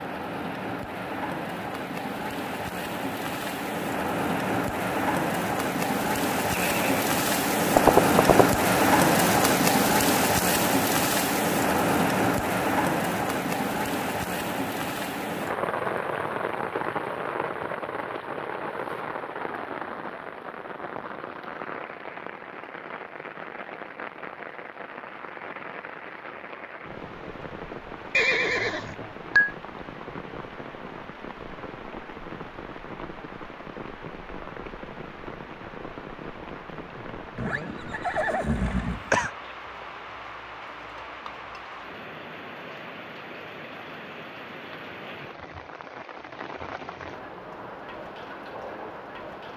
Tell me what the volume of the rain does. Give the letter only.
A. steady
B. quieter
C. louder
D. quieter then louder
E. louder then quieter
B.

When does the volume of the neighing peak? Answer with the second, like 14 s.
8 s.